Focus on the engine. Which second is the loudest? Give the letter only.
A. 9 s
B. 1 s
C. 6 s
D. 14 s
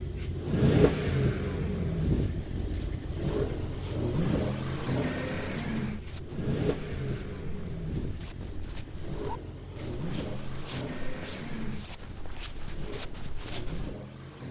B.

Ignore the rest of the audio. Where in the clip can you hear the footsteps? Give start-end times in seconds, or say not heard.
2.0-13.9.